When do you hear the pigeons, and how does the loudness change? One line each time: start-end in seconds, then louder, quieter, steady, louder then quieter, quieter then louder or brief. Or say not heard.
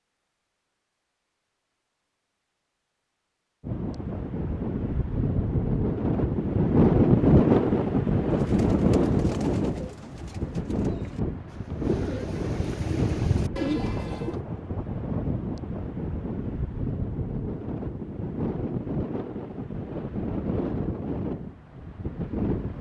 8.3-14.4 louder.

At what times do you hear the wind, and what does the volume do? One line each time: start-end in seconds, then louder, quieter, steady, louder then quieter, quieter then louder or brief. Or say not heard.
3.6-22.7 quieter.